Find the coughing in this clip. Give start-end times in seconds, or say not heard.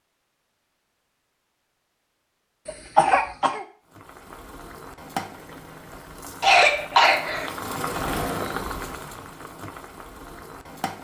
2.6-3.6, 6.4-7.5.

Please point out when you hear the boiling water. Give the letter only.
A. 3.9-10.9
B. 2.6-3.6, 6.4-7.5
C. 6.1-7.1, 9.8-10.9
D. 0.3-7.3
A.